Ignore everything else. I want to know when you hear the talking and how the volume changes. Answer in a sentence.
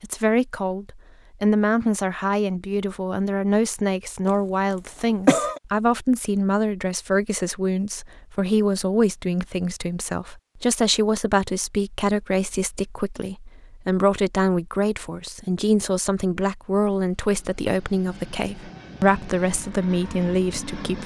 You can hear the talking from 0.0 to 21.0 s, at a steady volume.